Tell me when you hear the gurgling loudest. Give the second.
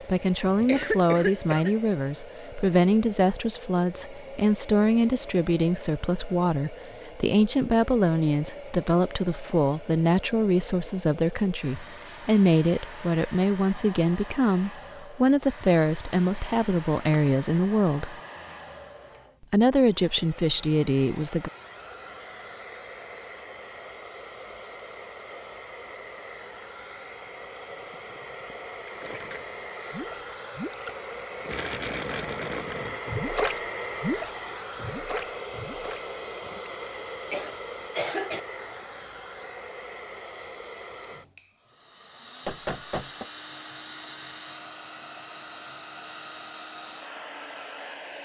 33 s.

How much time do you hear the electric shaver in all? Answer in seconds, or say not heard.
not heard.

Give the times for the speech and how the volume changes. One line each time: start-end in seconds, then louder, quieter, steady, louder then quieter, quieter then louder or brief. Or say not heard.
0.1-18.1 steady
19.5-21.5 brief.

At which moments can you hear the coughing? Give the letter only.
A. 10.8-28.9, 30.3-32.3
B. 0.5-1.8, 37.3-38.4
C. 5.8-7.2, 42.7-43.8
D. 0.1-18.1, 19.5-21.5
B.